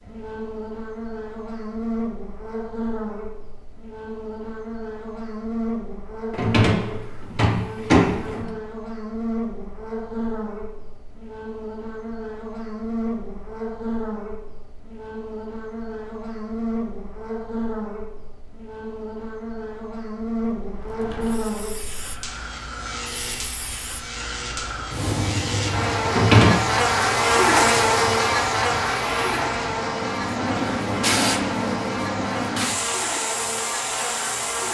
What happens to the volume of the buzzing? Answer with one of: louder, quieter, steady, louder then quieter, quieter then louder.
louder.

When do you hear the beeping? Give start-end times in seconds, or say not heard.
not heard.